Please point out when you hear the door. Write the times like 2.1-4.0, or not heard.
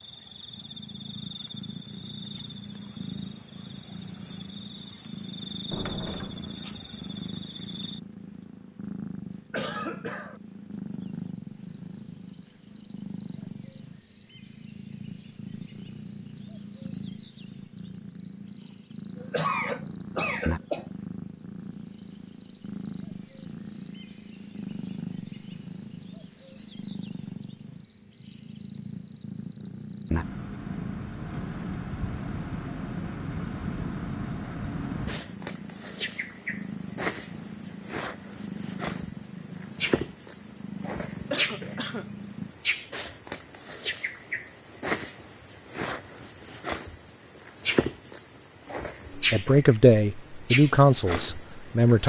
5.7-6.5.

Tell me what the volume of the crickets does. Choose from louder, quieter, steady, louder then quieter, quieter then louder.
louder.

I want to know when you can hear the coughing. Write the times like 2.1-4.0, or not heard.
9.5-10.4, 19.1-20.9, 41.3-42.0.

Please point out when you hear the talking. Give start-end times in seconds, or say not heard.
49.1-52.0.